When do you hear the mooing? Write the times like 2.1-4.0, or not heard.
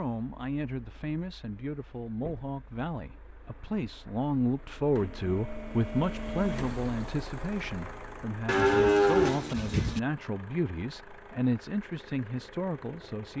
8.4-10.0.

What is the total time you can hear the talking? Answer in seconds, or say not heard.
13 s.